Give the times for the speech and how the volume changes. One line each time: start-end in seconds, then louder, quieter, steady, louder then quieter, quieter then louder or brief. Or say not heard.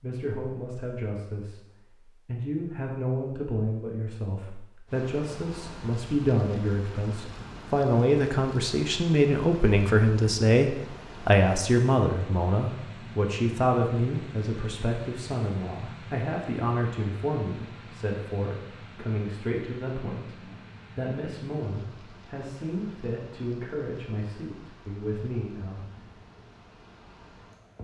0.0-25.9 louder then quieter.